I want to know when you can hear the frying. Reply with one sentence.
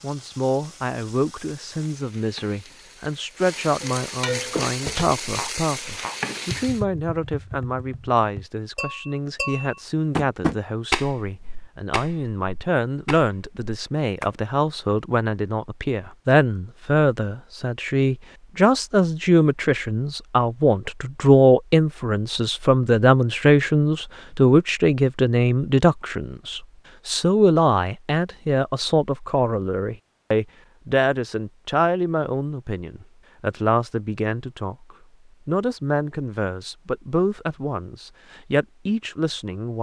You can hear the frying from 0.0 to 6.8 s.